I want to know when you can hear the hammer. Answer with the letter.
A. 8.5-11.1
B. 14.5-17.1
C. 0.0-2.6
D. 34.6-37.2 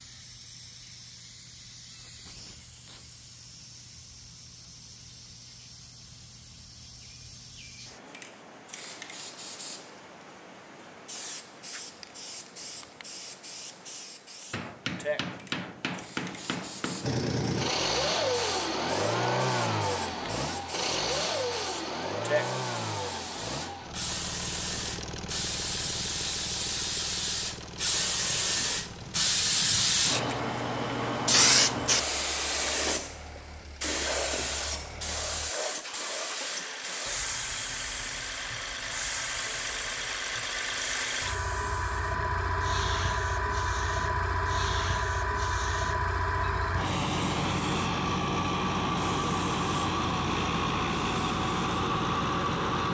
B.